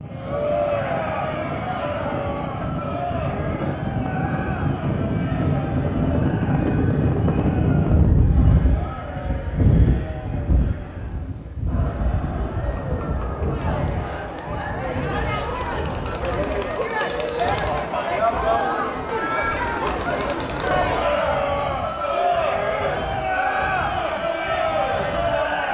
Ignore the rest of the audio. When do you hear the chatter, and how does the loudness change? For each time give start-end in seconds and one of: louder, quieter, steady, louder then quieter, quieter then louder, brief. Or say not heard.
0.1-25.6 quieter then louder.